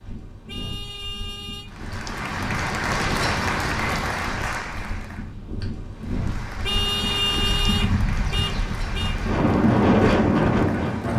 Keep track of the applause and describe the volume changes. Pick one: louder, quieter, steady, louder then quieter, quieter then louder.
quieter.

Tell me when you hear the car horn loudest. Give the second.
7 s.